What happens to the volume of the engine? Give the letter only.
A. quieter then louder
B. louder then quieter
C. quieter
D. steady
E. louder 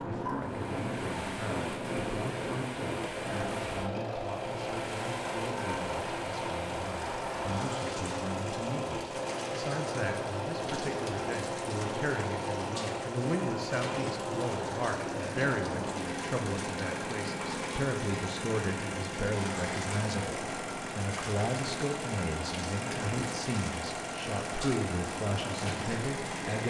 D.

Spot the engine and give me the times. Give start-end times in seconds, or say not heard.
0.0-26.6.